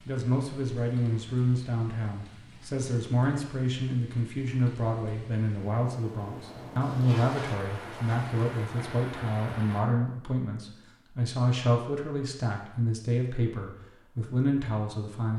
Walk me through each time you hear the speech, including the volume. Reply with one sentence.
You can hear the speech from 0.1 to 15.3 s, at a steady volume.